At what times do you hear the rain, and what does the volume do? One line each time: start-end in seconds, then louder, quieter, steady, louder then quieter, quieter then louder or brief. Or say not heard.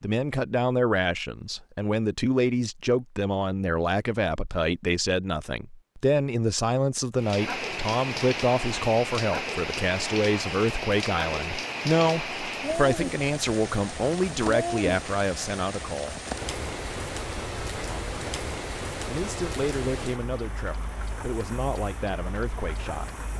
7.2-23.3 quieter.